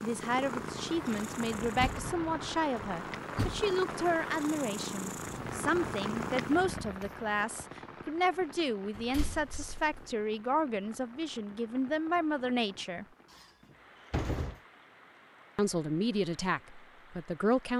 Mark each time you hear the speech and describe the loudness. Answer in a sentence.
The speech can be heard from 0.0 to 13.1 s, at a steady volume; and briefly from 15.6 to 17.7 s.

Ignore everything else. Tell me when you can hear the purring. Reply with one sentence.
You can hear the purring from 0.0 to 7.3 s.